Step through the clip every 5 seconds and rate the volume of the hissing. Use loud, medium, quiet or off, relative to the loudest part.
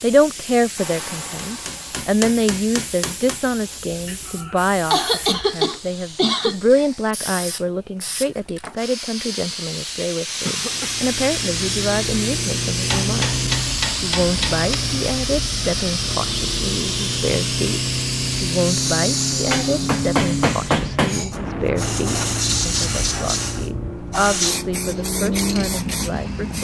medium, medium, loud, loud, loud, medium.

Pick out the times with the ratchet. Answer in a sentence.
The ratchet can't be heard in this clip.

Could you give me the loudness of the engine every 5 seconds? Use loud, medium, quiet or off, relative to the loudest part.
off, off, loud, loud, loud, loud.